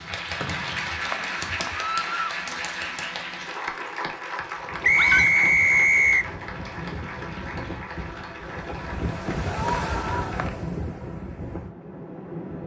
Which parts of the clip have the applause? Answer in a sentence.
The applause can be heard from 0.0 to 10.4 s.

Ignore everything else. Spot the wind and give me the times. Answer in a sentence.
The wind can be heard from 4.5 to 12.6 s.